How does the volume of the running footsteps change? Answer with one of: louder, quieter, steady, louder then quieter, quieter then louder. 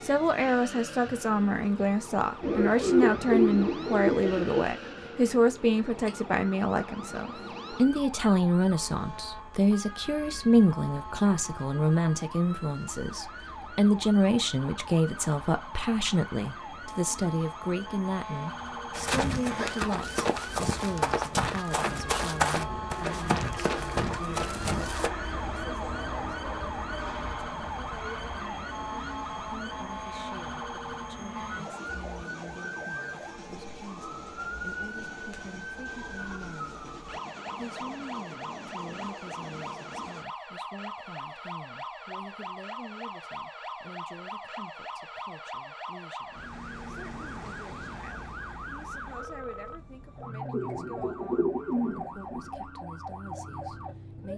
steady.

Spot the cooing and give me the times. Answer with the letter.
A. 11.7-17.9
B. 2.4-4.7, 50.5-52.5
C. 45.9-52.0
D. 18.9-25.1
B.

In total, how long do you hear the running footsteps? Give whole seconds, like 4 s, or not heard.
6 s.